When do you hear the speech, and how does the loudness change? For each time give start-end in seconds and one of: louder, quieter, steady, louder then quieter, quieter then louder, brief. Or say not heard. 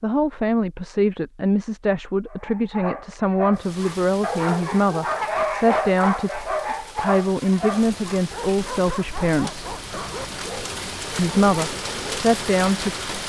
0.0-9.7 steady
11.2-12.9 brief.